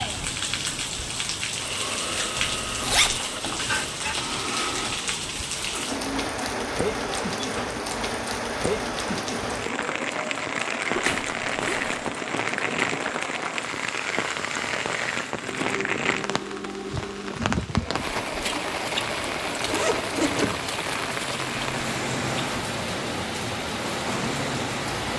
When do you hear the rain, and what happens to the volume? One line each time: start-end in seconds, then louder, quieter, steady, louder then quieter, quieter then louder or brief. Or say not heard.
0.0-25.1 steady.